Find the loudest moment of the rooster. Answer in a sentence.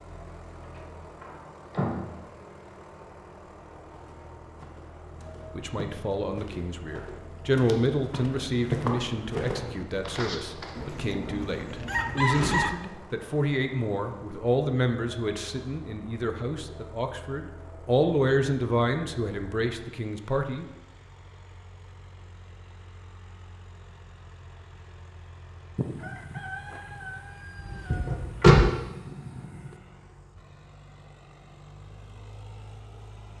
The volume of the rooster peaks at 12 seconds.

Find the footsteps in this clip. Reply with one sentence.
You can hear the footsteps from 4.0 to 11.0 s.